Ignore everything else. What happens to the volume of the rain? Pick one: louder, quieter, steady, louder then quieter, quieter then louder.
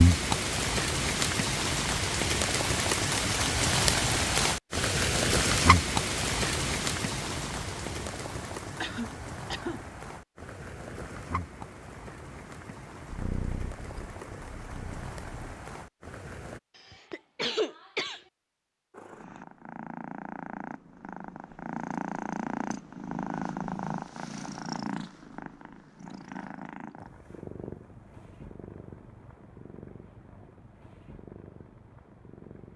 quieter.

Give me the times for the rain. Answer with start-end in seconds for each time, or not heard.
0.0-16.6.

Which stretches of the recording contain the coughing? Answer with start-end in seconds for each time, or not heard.
8.8-9.8, 16.8-18.2.